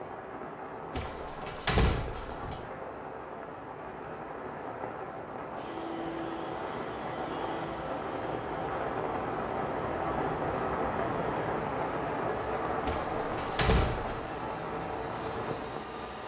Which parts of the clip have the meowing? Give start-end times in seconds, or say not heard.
not heard.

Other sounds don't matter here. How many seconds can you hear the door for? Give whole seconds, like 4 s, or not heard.
3 s.